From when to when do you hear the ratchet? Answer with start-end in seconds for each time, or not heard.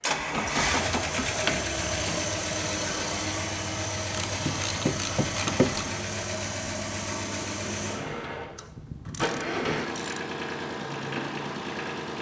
0.3-2.3, 4.1-5.9, 8.3-10.2.